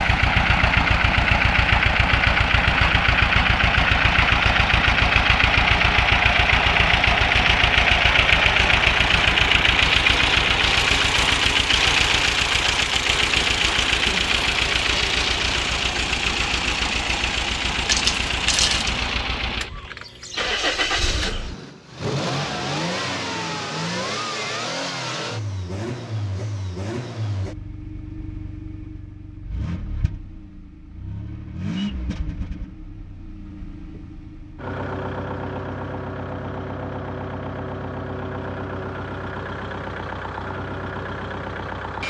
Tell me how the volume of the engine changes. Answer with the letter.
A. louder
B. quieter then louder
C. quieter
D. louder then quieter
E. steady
C.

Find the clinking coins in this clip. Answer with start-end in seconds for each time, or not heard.
17.9-18.9.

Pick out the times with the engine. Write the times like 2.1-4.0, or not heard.
0.0-42.0.